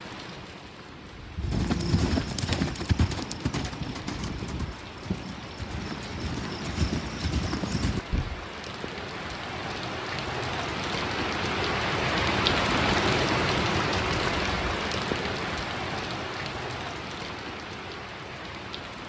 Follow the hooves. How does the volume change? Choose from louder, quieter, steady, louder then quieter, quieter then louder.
quieter then louder.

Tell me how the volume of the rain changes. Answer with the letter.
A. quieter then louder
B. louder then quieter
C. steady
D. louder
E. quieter
B.